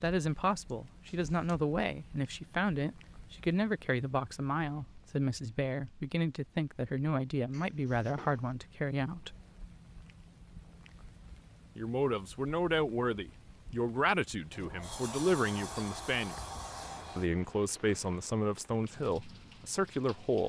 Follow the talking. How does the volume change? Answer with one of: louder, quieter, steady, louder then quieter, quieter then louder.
steady.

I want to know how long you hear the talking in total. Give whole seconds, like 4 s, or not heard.
17 s.